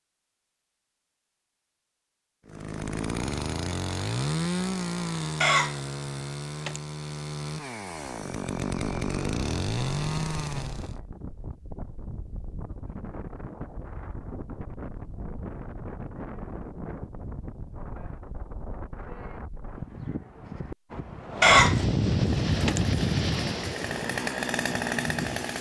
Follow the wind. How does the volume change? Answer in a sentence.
The volume of the wind goes up.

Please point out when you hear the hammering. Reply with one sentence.
The hammering can't be heard in this clip.